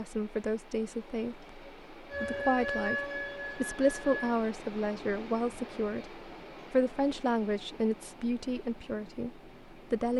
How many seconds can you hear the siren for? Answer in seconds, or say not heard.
2 s.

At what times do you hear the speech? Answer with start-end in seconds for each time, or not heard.
0.0-10.1.